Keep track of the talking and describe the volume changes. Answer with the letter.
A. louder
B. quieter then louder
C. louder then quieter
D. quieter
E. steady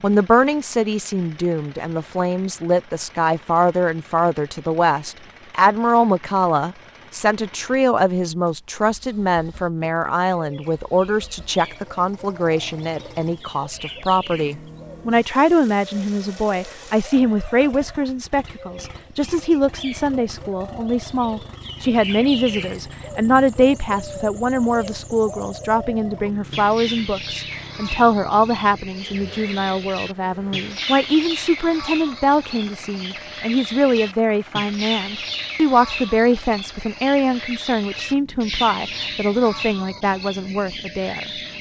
E.